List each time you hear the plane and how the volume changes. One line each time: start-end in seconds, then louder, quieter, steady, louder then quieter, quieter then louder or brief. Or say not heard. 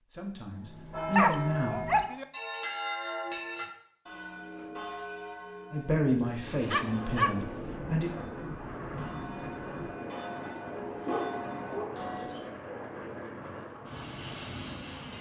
6.4-15.1 steady.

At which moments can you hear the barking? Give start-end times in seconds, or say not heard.
1.1-2.2, 6.1-7.3, 10.4-12.0.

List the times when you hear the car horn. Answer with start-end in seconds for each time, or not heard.
not heard.